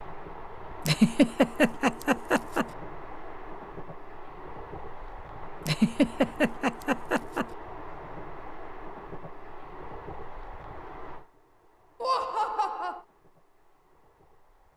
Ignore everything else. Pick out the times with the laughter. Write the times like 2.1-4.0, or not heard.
0.8-2.6, 5.7-7.5, 12.0-13.0.